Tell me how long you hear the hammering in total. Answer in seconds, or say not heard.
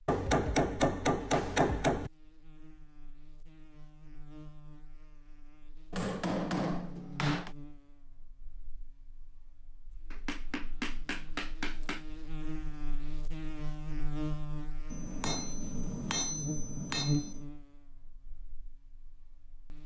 8 s.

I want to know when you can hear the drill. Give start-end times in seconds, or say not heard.
not heard.